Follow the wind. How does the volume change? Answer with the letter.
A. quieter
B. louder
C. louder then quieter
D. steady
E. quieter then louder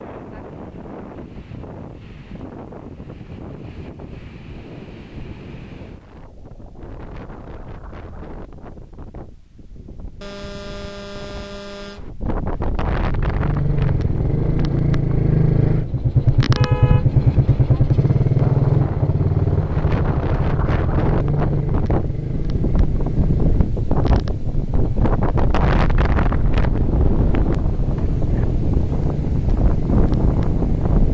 B.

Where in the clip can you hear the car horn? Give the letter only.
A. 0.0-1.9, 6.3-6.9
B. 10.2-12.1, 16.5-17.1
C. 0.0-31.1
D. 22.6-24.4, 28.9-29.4
B.